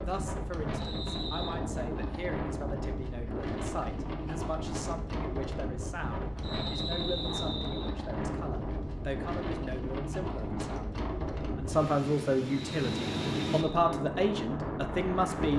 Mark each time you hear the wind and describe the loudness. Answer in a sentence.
You can hear the wind from 0.0 to 15.5 s, at a steady volume.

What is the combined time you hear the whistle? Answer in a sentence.
You can hear the whistle for 4 seconds altogether.